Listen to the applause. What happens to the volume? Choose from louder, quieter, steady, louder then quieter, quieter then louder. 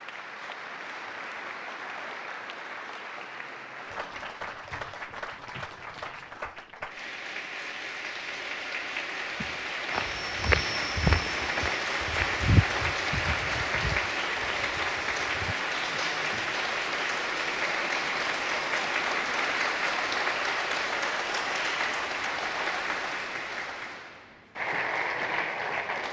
louder.